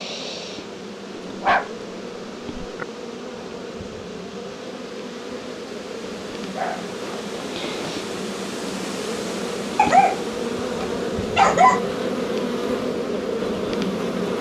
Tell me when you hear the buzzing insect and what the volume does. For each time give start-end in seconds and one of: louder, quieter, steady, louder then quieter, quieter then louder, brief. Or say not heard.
0.0-14.3 louder.